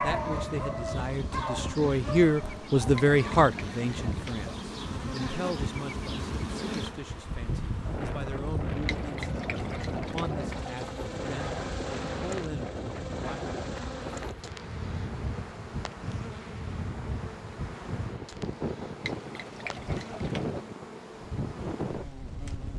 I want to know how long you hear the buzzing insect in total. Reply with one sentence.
You can hear the buzzing insect for 23 seconds altogether.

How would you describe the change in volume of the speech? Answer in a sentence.
The volume of the speech goes up, then down.